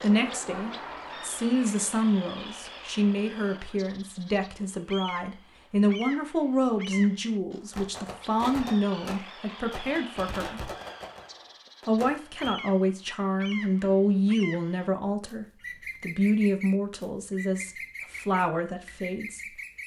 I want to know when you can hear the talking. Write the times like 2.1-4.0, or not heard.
0.0-10.6, 11.8-19.6.